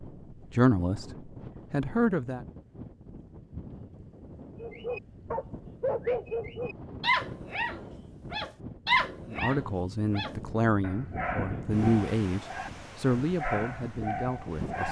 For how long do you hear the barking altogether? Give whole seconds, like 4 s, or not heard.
10 s.